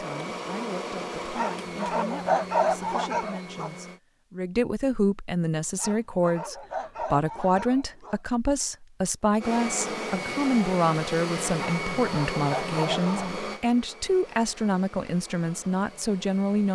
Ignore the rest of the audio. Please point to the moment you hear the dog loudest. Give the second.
2 s.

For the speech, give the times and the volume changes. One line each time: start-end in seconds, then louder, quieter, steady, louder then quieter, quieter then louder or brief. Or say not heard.
0.0-16.6 louder.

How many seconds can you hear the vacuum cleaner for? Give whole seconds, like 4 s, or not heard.
11 s.